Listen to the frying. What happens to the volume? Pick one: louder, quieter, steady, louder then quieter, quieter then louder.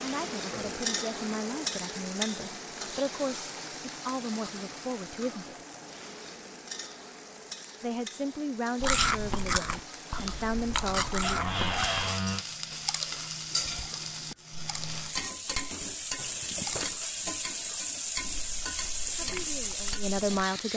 quieter then louder.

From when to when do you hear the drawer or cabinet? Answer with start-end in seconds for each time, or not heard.
11.2-12.4.